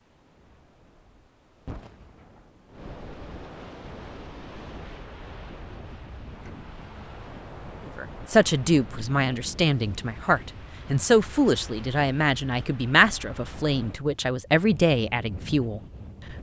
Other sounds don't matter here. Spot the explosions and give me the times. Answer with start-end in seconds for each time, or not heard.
1.6-2.5.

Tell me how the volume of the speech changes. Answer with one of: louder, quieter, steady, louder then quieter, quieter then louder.
steady.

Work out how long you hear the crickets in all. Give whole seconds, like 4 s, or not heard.
not heard.